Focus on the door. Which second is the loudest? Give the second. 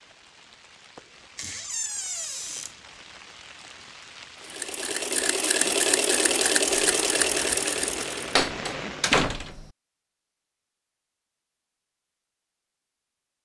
9 s.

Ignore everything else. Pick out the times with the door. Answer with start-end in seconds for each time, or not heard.
1.4-2.8, 8.3-9.7.